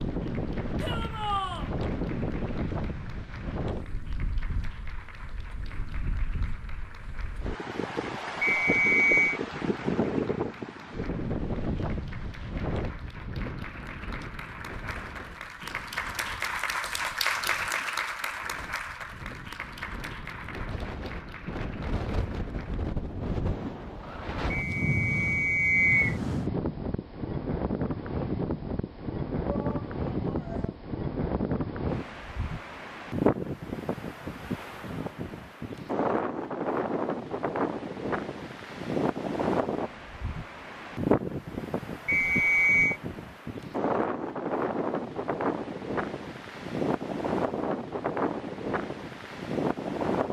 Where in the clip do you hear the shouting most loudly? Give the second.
1 s.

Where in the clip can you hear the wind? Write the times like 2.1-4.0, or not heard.
0.0-50.2.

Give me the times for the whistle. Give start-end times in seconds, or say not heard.
8.4-9.4, 24.5-26.1, 42.0-43.0.